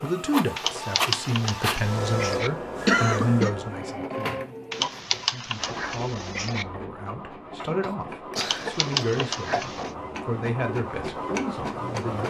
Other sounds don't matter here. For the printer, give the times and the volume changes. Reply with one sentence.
You can hear the printer from 0.0 to 12.2 s, getting quieter then louder.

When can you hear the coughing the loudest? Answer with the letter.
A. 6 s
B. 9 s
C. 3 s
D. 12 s
C.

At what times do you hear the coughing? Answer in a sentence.
The coughing can be heard from 2.9 to 3.5 s and from 7.6 to 9.6 s.